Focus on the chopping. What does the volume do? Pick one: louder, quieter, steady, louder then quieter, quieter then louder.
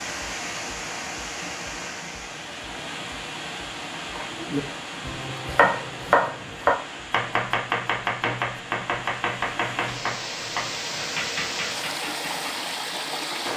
quieter.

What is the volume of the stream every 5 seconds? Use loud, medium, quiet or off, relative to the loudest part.
loud, medium, loud.